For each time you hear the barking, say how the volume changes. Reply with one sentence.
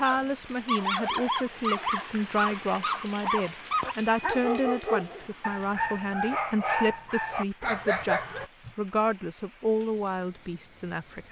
The barking can be heard from 0.0 to 8.7 s, at a steady volume.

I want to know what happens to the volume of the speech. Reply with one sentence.
The volume of the speech stays about the same.